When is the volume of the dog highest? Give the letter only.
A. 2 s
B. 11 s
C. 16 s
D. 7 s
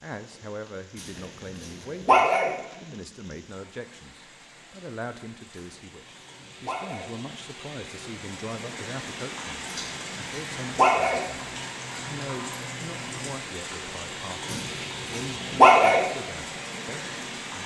C.